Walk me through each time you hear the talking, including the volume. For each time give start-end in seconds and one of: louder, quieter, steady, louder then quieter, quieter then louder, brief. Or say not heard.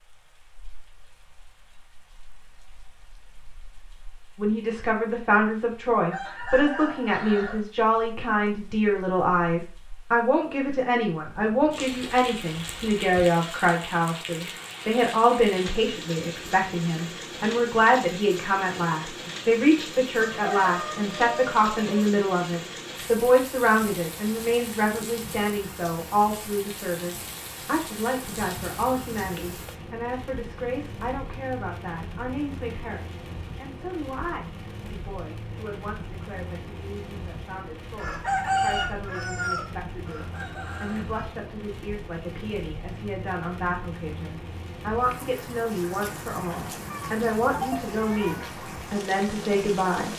4.3-50.1 quieter then louder.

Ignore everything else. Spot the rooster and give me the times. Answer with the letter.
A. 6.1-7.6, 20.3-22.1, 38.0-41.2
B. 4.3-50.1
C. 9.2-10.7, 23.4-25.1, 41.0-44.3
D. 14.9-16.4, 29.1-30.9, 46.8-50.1
A.